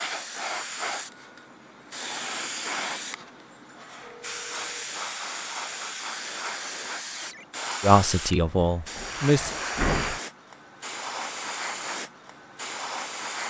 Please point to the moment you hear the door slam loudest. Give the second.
10 s.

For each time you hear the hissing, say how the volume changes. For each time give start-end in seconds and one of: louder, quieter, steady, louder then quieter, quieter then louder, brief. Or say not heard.
0.0-13.4 steady.